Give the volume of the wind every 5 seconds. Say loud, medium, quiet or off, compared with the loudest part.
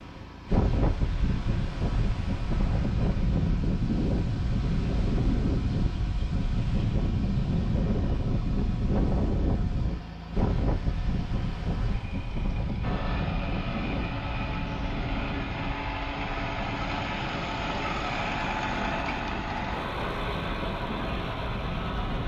loud, loud, loud, medium, medium.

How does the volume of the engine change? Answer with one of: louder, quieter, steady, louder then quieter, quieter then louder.
louder.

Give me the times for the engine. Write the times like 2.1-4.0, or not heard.
0.0-22.2.